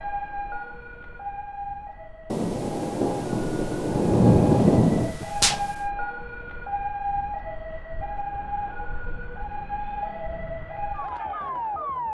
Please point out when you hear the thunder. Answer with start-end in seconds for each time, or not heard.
2.3-5.8.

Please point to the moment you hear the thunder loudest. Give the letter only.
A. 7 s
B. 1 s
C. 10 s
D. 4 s
D.